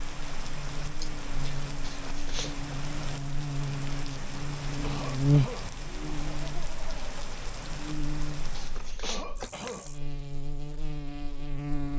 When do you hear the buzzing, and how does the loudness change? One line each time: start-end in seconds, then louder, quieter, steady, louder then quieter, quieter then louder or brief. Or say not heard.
0.0-11.9 louder then quieter.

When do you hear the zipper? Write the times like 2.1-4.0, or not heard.
1.8-2.6, 8.5-9.9.